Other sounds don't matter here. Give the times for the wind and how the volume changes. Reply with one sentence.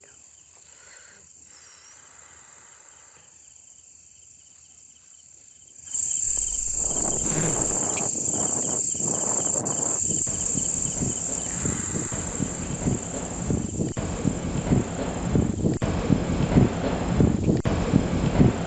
You can hear the wind from 6.8 to 18.6 s, getting louder.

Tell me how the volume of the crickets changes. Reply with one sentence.
The volume of the crickets goes up, then down.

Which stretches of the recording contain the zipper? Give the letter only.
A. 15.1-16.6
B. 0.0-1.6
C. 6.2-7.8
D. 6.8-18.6
C.